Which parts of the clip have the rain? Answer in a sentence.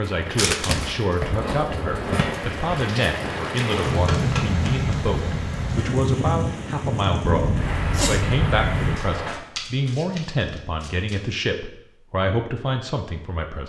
The rain can be heard from 0.0 to 9.3 s.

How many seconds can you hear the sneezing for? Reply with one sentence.
The sneezing can be heard for 2 seconds in total.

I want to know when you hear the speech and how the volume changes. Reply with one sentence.
You can hear the speech from 0.0 to 13.6 s, at a steady volume.